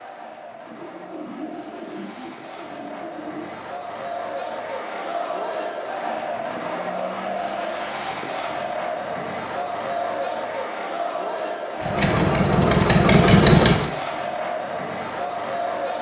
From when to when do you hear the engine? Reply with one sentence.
You can hear the engine from 11.8 to 13.9 s.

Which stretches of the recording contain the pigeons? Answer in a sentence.
You can hear the pigeons from 0.7 to 3.5 s.